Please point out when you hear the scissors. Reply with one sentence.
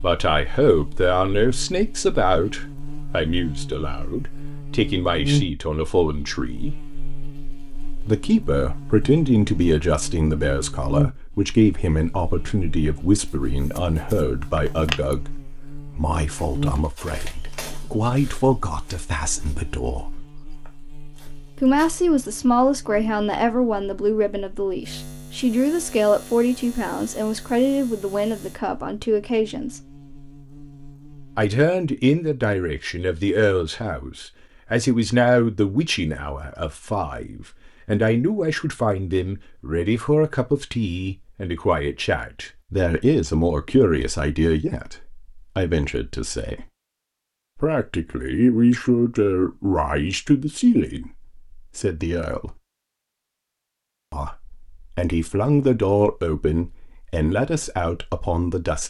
You can hear the scissors from 13.2 to 15.2 s.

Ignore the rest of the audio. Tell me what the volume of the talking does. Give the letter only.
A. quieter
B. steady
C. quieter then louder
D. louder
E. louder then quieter
B.